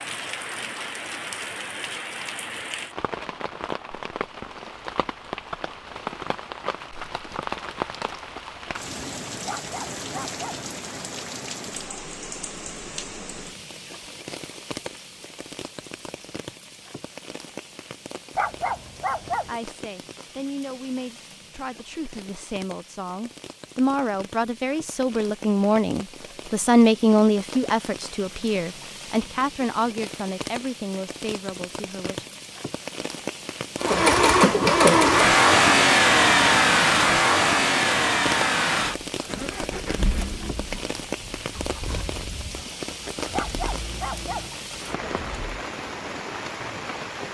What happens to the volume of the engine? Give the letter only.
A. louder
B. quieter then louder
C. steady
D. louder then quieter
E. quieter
E.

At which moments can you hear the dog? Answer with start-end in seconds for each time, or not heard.
9.4-10.7, 18.4-19.5, 43.3-44.5.